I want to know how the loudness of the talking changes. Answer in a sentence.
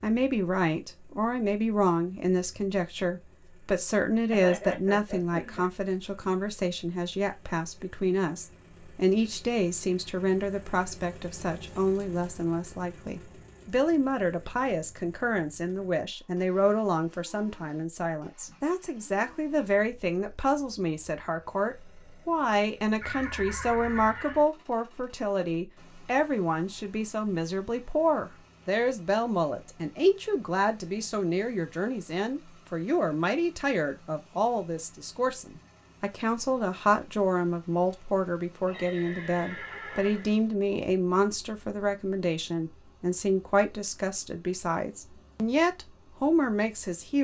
The loudness of the talking stays about the same.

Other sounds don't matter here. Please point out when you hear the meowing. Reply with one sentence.
The meowing can't be heard in this clip.